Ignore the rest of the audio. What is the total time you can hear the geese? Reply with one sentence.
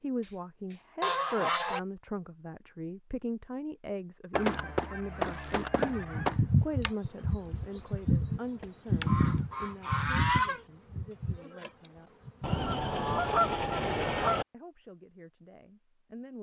The geese can be heard for 8 seconds in total.